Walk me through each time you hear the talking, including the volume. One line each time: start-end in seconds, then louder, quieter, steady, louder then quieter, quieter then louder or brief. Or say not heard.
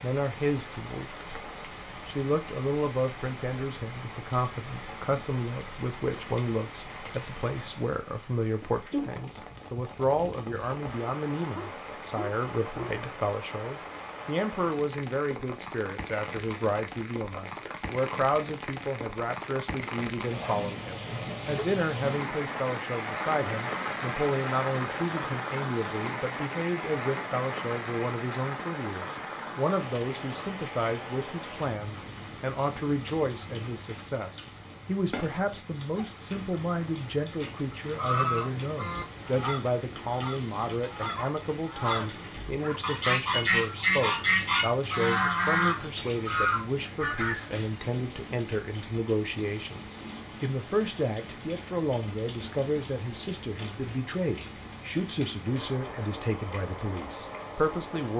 0.0-1.2 brief
2.0-58.1 steady.